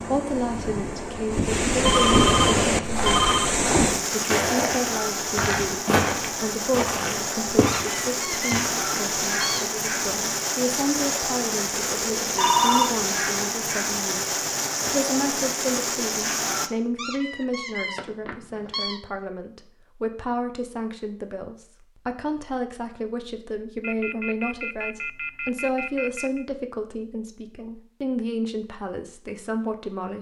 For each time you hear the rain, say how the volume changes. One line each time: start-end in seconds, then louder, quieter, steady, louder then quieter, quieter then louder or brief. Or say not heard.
0.0-16.7 steady.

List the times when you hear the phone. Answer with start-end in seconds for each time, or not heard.
1.8-3.5, 11.8-12.9, 23.8-26.4.